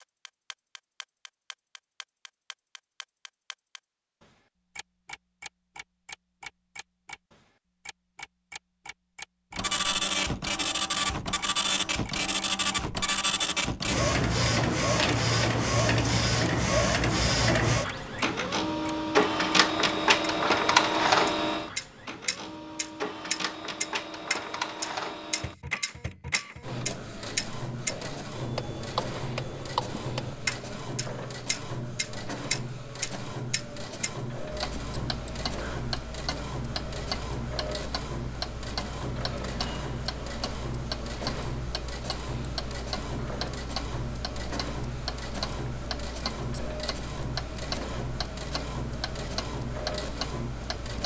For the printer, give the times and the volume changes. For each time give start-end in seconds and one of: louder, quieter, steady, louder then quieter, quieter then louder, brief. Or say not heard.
9.6-51.0 quieter.